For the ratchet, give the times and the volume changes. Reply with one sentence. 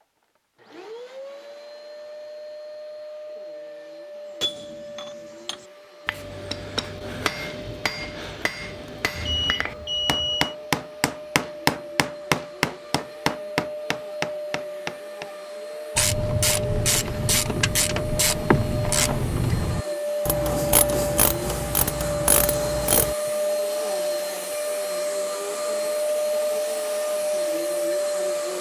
The ratchet can be heard from 15.9 to 23.1 s, at a steady volume.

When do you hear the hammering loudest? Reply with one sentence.
The volume of the hammering peaks at 12 seconds.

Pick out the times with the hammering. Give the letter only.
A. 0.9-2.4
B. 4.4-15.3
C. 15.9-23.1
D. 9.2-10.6
B.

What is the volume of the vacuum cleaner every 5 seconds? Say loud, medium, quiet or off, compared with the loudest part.
quiet, quiet, medium, medium, loud, loud.